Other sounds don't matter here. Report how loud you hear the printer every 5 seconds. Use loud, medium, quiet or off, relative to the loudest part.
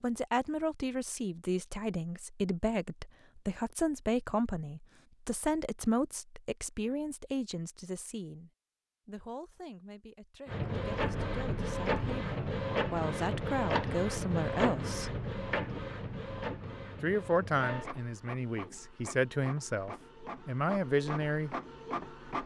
off, off, loud, medium, medium.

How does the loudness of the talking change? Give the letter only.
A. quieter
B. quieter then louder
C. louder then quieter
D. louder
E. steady
B.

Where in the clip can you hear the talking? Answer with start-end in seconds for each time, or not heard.
0.0-15.2, 17.0-21.6.